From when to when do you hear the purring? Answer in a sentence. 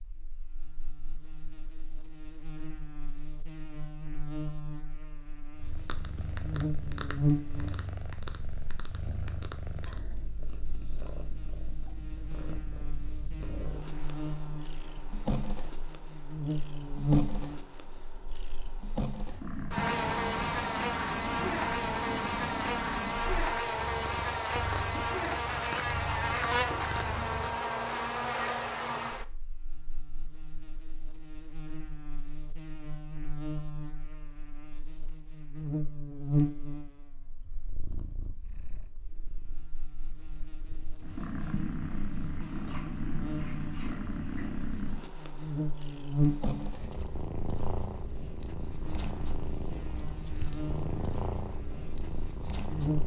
You can hear the purring from 5.5 to 27.6 s and from 37.4 to 53.0 s.